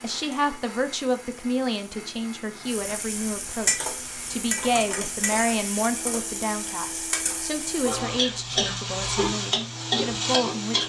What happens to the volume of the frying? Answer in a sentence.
The volume of the frying goes up.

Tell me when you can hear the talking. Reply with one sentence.
You can hear the talking from 0.0 to 10.8 s.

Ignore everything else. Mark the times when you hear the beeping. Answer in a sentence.
The beeping can't be heard in this clip.